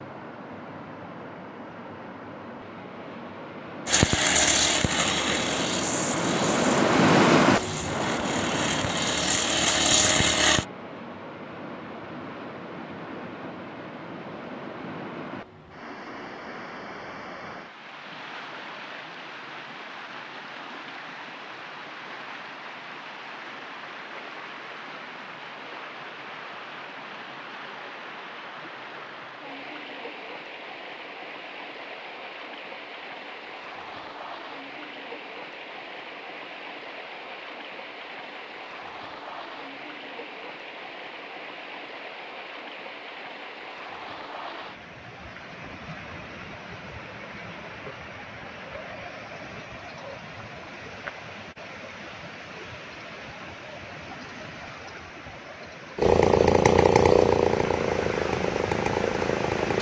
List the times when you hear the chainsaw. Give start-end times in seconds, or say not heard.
3.9-10.7, 56.0-59.7.